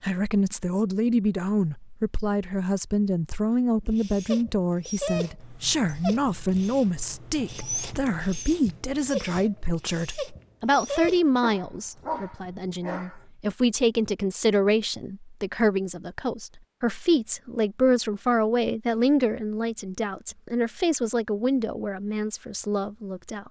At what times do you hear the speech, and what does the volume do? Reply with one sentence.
You can hear the speech from 0.0 to 23.4 s, at a steady volume.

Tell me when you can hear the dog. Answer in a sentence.
The dog can be heard from 3.9 to 13.2 s.